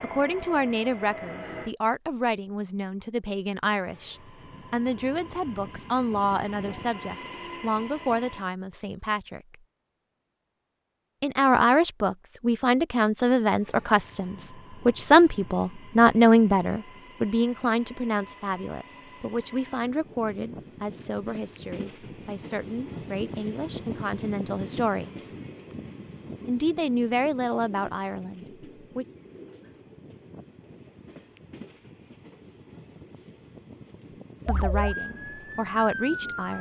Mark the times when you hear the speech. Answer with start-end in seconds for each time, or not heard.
0.0-9.6, 11.2-25.3, 26.4-29.1, 34.5-36.5.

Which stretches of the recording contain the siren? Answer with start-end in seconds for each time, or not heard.
34.5-36.5.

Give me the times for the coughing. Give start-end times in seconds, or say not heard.
not heard.